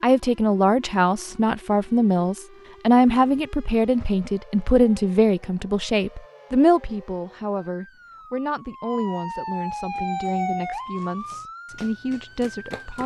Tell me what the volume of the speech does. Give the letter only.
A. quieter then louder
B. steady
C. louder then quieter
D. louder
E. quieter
E.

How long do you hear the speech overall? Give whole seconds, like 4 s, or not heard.
13 s.